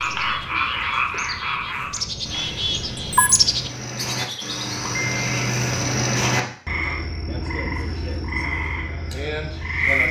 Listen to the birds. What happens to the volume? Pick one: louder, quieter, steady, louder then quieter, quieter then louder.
louder then quieter.